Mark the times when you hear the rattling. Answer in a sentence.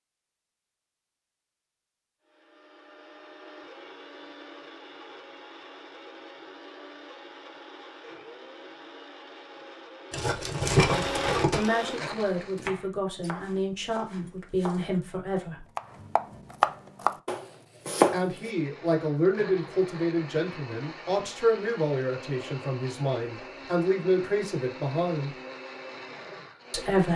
You can hear the rattling from 10.1 to 11.7 s.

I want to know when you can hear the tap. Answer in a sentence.
The tap can't be heard in this clip.